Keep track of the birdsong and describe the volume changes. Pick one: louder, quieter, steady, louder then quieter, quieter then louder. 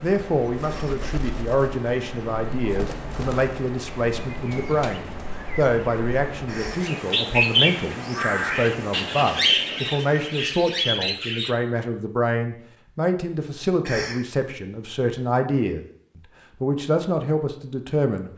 louder.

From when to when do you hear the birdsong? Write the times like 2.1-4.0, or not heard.
0.0-11.6.